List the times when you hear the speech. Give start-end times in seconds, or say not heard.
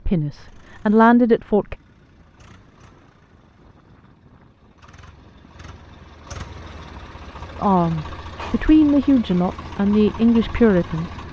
0.1-1.8, 7.5-11.1.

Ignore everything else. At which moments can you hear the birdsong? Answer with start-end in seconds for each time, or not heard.
not heard.